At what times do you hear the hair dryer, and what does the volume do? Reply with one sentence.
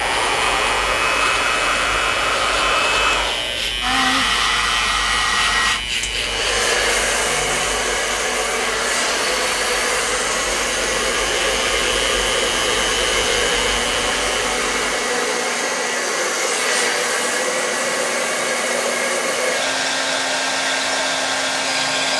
The hair dryer can be heard from 0.0 to 22.1 s, at a steady volume.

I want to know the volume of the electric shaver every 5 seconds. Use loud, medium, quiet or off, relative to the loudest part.
loud, loud, loud, off, off.